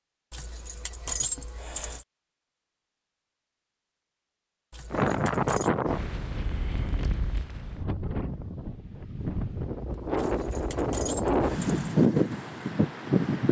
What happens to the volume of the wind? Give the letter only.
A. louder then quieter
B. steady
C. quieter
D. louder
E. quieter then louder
E.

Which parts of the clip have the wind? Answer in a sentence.
You can hear the wind from 4.9 to 13.4 s.